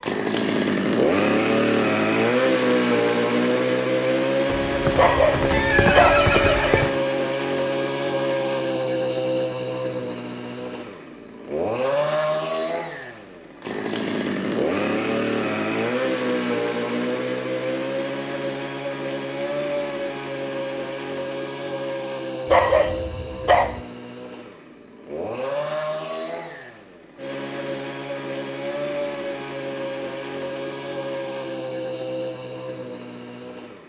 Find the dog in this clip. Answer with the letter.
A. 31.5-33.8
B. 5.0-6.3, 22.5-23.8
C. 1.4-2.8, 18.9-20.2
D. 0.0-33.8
B.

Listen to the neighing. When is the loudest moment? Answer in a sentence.
The volume of the neighing peaks at 6 seconds.